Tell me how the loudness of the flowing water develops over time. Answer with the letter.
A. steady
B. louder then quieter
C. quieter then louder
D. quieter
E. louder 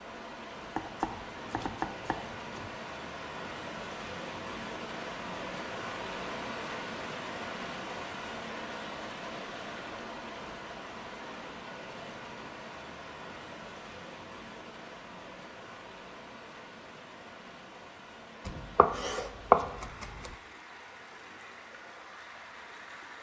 D.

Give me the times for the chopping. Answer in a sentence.
The chopping can be heard from 0.8 to 2.5 s and from 18.4 to 20.3 s.